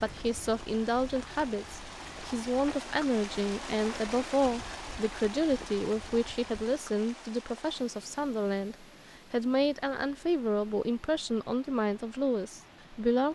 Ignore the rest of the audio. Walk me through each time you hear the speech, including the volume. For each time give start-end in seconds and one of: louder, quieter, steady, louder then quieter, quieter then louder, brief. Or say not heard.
0.0-13.3 steady.